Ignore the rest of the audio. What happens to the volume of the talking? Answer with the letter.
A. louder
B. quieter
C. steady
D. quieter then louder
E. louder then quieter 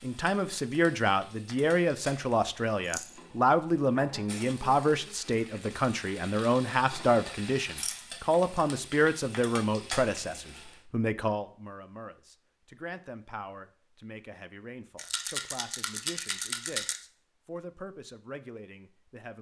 B.